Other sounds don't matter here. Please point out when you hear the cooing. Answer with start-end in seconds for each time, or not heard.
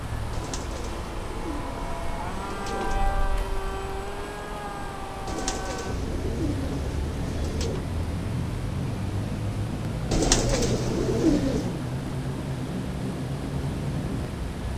0.3-3.1, 5.2-7.8, 10.1-11.8.